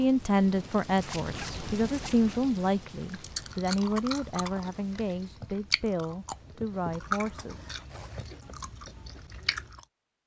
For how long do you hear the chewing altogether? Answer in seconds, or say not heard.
7 s.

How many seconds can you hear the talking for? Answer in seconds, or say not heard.
8 s.